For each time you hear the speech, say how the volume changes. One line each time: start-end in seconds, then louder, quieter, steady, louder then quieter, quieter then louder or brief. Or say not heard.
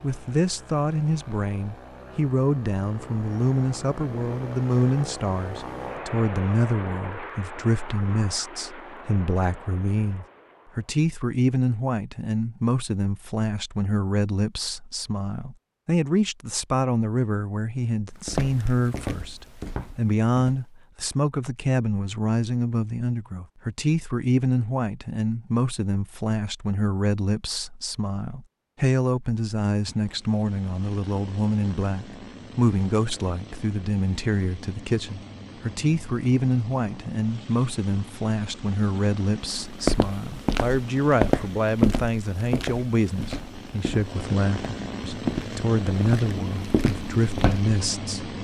0.0-48.3 steady.